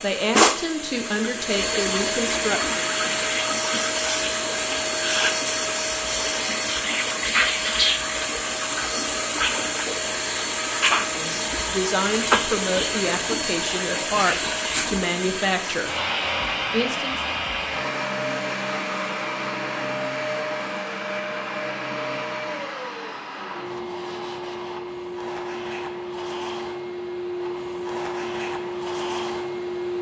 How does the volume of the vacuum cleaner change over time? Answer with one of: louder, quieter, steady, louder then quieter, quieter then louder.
quieter.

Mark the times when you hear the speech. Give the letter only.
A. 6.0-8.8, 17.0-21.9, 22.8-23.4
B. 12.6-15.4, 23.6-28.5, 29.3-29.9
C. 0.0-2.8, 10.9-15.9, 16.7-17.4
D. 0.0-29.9
C.